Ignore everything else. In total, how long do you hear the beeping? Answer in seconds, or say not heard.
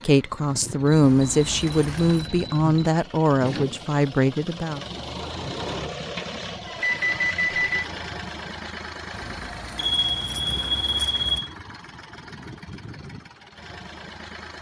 5 s.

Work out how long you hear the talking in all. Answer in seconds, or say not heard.
5 s.